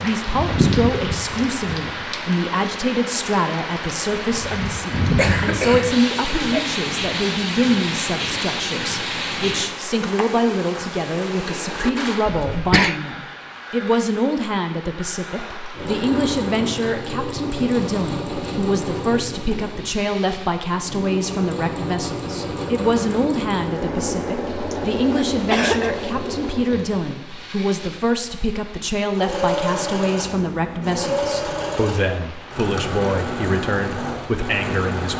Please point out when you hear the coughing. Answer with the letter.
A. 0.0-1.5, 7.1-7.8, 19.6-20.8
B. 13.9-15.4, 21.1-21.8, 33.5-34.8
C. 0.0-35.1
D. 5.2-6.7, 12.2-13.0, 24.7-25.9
D.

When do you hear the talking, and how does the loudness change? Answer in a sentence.
The talking can be heard from 0.0 to 35.1 s, at a steady volume.